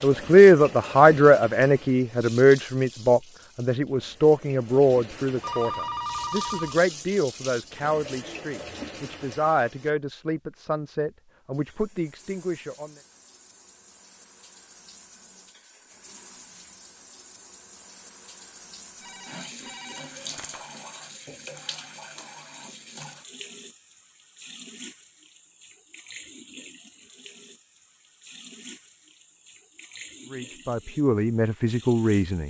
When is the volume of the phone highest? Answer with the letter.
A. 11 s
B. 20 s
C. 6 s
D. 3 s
C.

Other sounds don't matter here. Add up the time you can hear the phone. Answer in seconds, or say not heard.
3 s.